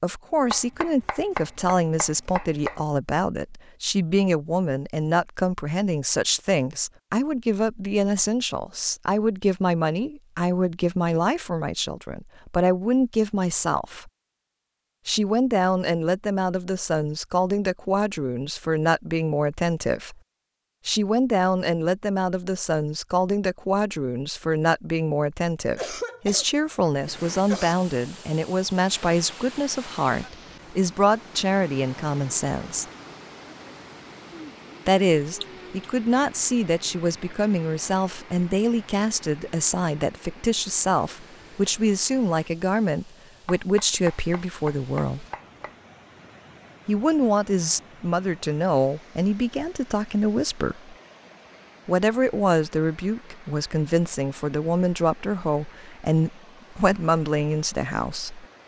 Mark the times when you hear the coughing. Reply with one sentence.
The coughing can be heard from 25.8 to 27.8 s and from 35.4 to 35.9 s.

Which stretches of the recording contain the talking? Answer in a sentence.
The talking can be heard from 0.0 to 14.1 s, from 15.1 to 20.1 s, from 20.9 to 32.9 s, from 34.9 to 45.2 s, from 46.9 to 51.0 s and from 51.9 to 58.5 s.